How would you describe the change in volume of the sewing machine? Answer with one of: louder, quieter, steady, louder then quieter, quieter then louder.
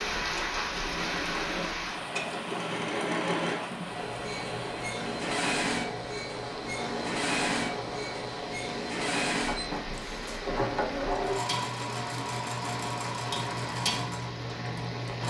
steady.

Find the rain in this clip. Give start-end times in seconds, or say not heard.
0.0-15.2.